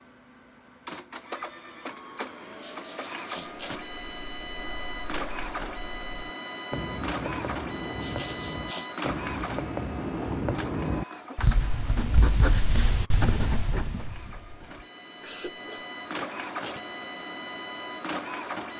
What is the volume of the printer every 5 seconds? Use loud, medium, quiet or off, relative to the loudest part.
loud, loud, medium, loud.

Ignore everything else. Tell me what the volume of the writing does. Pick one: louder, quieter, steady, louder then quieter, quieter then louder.
louder.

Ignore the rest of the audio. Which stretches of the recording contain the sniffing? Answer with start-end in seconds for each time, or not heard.
2.6-3.6, 8.0-8.9, 15.2-15.8.